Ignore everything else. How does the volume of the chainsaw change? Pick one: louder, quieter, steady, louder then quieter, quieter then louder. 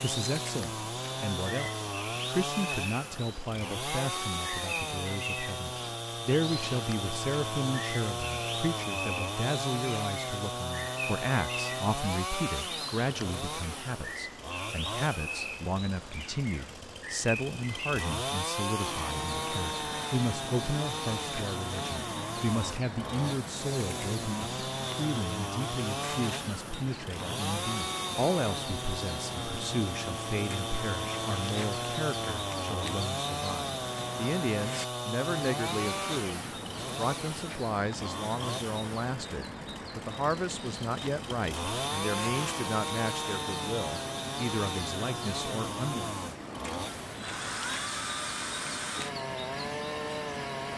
steady.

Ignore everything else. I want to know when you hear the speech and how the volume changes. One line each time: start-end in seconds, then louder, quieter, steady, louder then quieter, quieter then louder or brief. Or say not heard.
0.0-46.1 steady.